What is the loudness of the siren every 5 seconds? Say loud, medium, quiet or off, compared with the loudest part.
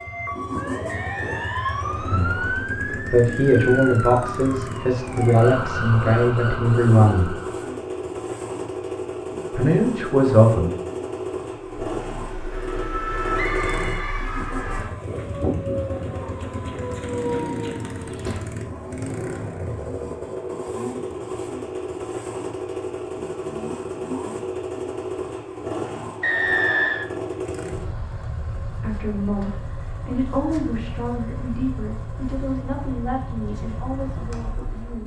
loud, loud, loud, loud, off, off, off.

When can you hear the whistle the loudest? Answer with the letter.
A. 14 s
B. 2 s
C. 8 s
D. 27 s
D.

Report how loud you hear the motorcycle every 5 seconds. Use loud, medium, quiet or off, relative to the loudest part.
loud, loud, loud, loud, loud, loud, medium.